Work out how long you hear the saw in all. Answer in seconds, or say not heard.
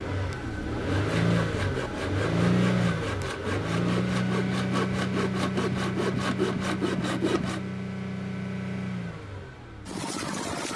7 s.